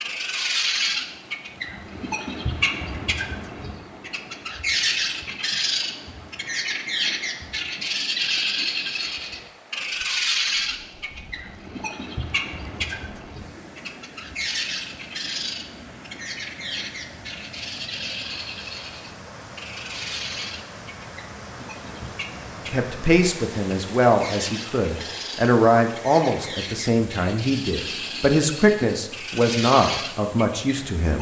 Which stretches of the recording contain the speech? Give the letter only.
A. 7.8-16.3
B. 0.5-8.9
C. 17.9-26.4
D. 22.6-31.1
D.